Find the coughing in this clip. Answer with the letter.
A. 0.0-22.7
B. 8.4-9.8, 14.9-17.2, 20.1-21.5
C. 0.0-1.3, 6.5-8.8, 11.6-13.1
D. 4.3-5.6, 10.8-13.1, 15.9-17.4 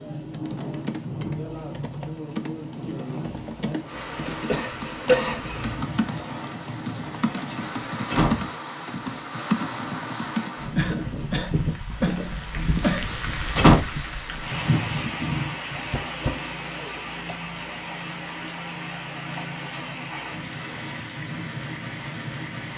D.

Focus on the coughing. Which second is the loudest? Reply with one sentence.
The loudest moment of the coughing is at 5 seconds.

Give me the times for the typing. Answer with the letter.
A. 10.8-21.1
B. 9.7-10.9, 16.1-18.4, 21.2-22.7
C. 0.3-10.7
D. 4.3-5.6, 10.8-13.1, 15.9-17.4
C.